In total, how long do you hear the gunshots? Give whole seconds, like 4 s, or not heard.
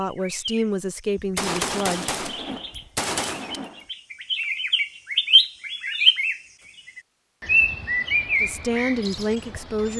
3 s.